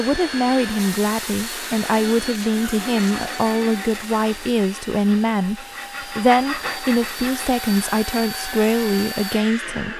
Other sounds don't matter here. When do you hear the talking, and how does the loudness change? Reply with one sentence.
The talking can be heard from 0.0 to 9.9 s, at a steady volume.